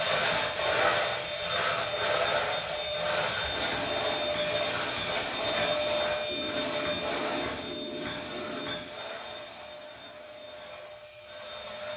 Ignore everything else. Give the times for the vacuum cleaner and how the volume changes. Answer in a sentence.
The vacuum cleaner can be heard from 0.0 to 11.9 s, getting quieter.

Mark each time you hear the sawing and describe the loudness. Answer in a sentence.
You can't hear the sawing here.